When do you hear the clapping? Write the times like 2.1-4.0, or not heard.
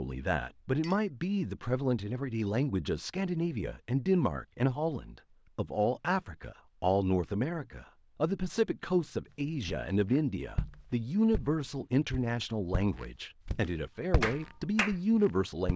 14.2-14.9.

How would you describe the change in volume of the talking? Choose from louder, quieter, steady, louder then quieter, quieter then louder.
steady.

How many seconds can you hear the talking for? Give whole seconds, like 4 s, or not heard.
16 s.